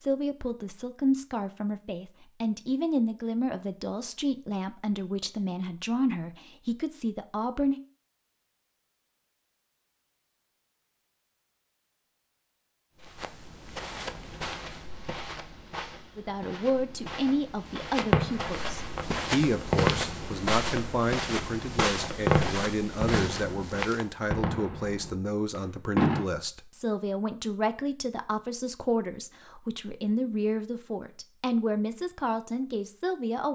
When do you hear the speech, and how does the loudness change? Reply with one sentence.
The speech can be heard from 0.0 to 7.8 s, at a steady volume; and from 16.1 to 33.5 s, at a steady volume.